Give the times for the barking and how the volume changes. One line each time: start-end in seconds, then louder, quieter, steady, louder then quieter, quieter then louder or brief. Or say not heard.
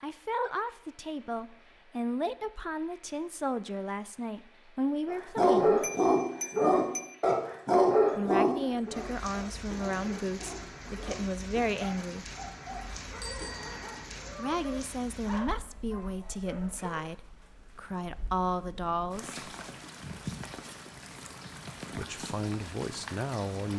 5.0-17.1 quieter.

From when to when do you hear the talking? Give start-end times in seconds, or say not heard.
0.0-5.9, 8.2-12.3, 14.3-19.4, 21.9-23.7.